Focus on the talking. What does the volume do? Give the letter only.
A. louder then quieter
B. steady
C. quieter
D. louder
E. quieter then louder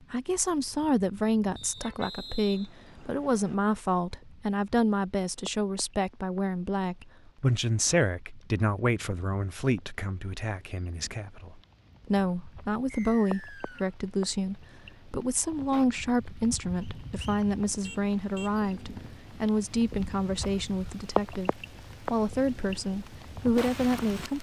B.